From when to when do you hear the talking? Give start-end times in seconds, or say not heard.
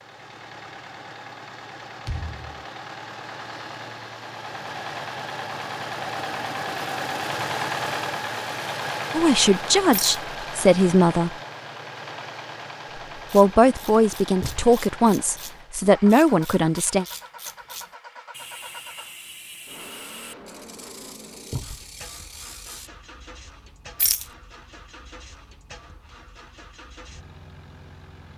9.1-11.3, 13.3-17.1.